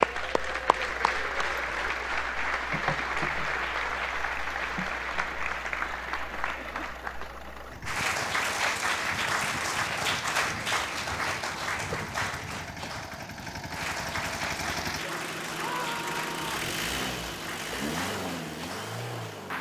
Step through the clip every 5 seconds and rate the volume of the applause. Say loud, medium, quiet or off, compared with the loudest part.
loud, loud, loud, medium.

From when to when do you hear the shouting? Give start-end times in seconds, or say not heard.
15.5-16.6.